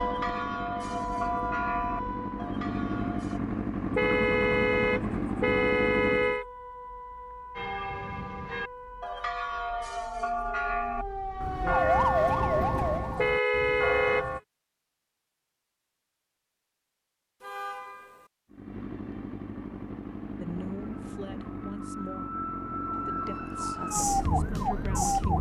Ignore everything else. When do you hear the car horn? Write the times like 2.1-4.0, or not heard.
4.0-6.5, 13.2-14.3, 17.4-18.3.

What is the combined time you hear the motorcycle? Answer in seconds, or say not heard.
13 s.